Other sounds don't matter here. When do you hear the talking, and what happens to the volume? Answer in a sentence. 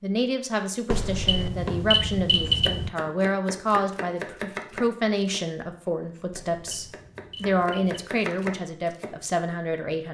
You can hear the talking from 0.0 to 10.1 s, at a steady volume.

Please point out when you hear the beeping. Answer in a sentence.
The beeping can be heard from 0.9 to 2.9 s and from 6.3 to 8.0 s.